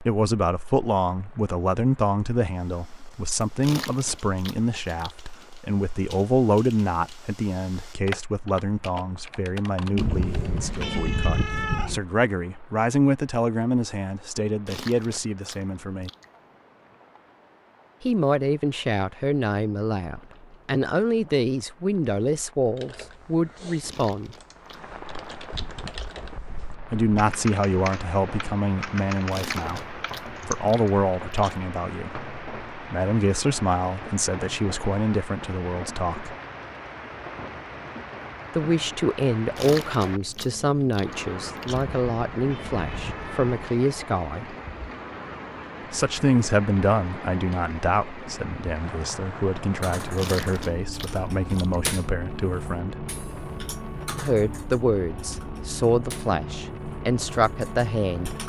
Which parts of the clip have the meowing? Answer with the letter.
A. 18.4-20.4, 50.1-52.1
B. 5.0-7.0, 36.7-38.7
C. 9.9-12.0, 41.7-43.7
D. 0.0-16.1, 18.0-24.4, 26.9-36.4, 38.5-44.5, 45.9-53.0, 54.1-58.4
C.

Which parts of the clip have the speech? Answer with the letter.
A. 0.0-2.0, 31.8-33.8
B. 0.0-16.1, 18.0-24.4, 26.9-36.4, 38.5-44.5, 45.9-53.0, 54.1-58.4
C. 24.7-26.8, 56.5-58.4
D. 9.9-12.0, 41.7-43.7
B.